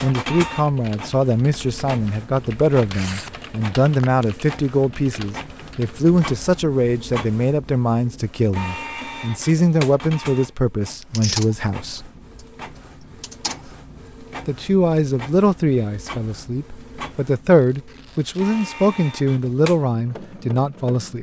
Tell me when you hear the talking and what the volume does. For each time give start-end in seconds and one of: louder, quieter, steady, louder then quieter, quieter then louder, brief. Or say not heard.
0.0-12.1 steady
14.4-21.1 quieter then louder.